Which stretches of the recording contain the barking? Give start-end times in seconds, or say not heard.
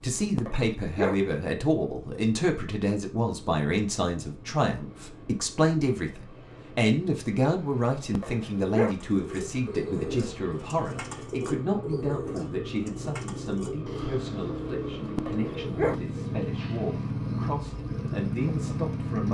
0.3-1.1, 8.1-8.9, 15.2-15.9.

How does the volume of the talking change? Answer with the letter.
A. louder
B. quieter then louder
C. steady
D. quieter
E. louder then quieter
D.